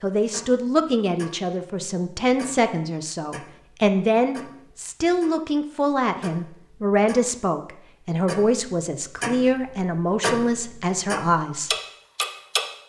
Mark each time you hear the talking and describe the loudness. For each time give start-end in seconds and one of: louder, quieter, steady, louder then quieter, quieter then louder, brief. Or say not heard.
0.0-11.7 steady.